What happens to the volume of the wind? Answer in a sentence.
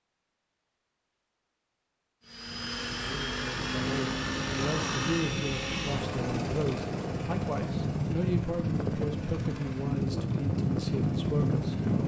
The loudness of the wind goes up.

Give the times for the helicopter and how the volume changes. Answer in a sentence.
You can hear the helicopter from 2.2 to 12.0 s, getting quieter.